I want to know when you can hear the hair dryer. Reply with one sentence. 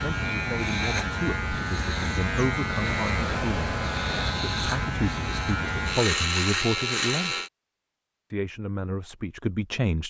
You can hear the hair dryer from 2.8 to 4.5 s.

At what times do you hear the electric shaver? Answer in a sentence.
You can hear the electric shaver from 0.0 to 7.5 s.